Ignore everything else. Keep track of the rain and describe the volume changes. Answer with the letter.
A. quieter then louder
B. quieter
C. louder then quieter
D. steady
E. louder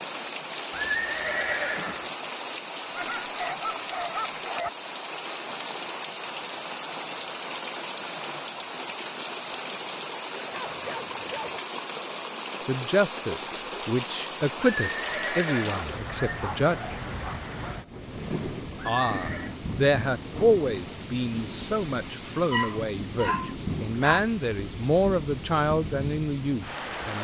D.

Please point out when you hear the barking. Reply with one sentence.
You can hear the barking from 2.9 to 4.7 s, from 10.5 to 11.6 s, from 15.7 to 17.9 s and from 22.5 to 24.2 s.